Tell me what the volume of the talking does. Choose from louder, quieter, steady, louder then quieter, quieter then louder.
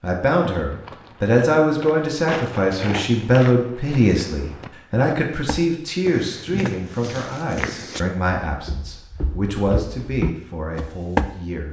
quieter.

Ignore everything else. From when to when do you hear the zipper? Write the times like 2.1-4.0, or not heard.
not heard.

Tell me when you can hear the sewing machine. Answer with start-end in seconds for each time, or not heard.
not heard.